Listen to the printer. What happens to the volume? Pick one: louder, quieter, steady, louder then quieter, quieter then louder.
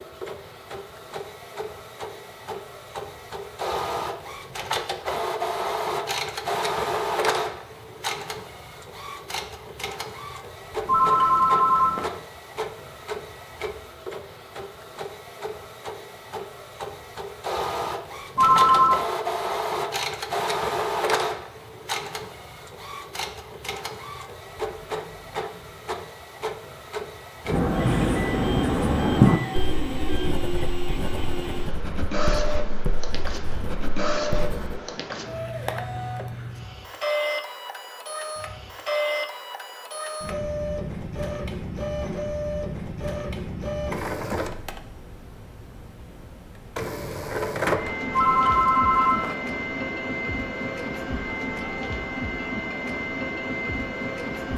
steady.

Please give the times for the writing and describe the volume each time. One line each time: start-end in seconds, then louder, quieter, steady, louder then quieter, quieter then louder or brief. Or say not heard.
27.4-34.8 quieter.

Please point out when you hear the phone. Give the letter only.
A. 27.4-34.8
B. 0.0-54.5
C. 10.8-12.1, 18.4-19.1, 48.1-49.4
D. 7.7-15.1
C.